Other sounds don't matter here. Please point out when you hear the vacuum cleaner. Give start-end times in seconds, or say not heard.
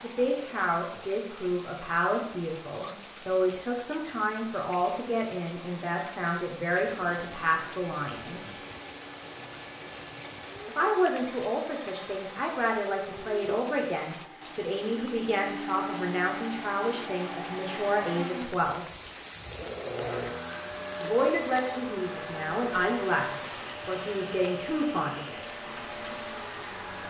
7.0-27.0.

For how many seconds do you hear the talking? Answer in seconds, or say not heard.
21 s.